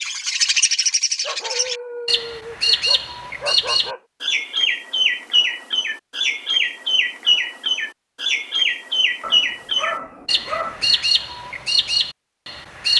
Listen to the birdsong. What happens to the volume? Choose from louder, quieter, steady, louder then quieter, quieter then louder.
steady.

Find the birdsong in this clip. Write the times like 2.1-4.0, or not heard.
0.0-12.9.